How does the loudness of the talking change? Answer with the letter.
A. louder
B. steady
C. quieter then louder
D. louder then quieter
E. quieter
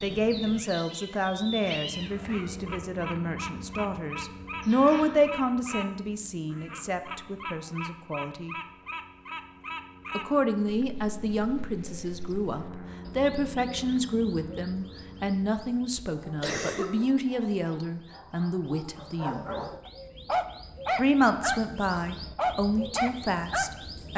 B.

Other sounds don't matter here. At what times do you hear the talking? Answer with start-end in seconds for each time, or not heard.
0.0-8.6, 10.1-19.7, 20.9-24.1.